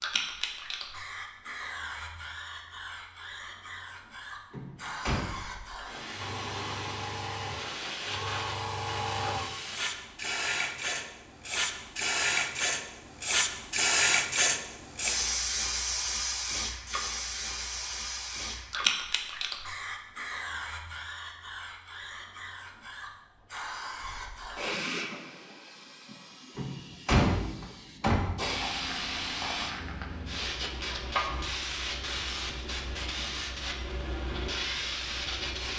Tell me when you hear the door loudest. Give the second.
27 s.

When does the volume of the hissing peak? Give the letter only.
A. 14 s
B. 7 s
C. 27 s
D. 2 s
A.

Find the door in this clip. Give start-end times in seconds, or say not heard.
4.5-5.2, 26.6-28.6.